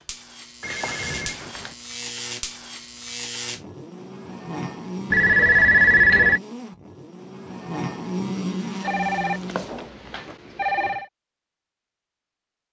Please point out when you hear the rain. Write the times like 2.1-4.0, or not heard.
not heard.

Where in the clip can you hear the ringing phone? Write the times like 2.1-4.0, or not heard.
0.6-1.8, 5.1-6.4, 8.8-11.1.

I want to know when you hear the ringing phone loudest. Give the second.
6 s.